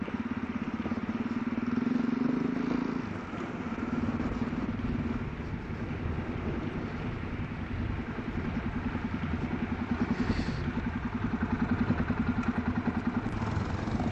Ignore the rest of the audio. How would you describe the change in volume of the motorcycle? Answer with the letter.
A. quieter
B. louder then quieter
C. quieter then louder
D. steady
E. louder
C.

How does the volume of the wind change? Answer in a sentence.
The loudness of the wind stays about the same.